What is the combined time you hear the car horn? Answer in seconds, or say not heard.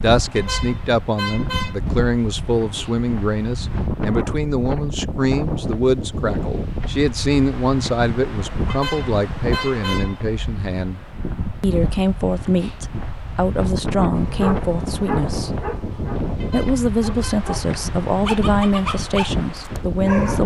4 s.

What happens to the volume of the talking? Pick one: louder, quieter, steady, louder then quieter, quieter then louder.
steady.